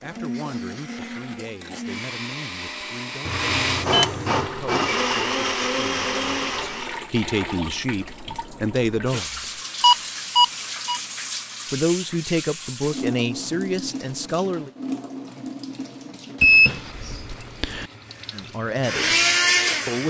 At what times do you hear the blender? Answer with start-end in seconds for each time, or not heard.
0.0-7.0, 18.3-20.0.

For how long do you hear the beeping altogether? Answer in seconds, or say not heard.
4 s.